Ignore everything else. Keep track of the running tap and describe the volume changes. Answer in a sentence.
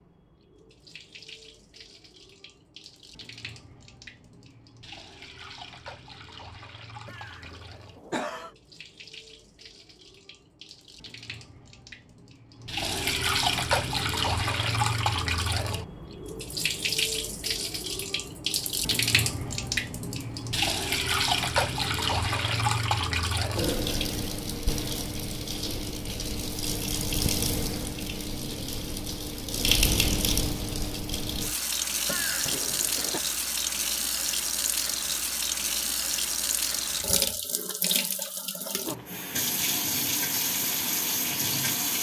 The volume of the running tap goes up.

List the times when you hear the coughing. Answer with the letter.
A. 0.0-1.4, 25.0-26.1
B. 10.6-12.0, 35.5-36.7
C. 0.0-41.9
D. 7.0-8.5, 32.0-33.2
D.